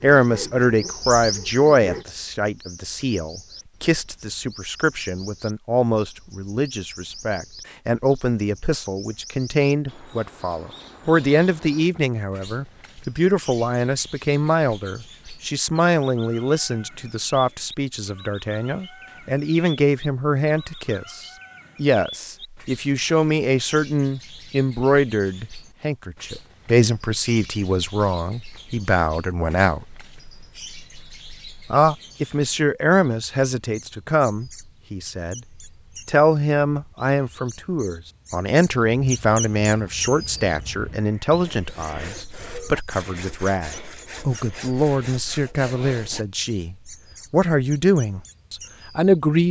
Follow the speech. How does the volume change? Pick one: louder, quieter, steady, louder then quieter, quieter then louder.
steady.